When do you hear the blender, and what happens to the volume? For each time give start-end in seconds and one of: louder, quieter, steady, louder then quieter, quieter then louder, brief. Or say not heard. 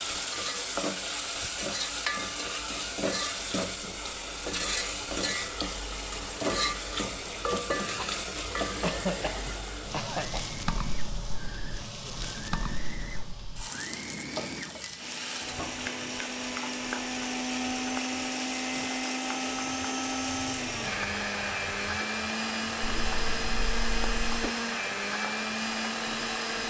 0.0-26.6 louder.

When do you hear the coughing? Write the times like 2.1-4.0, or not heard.
8.8-10.6, 22.8-24.6.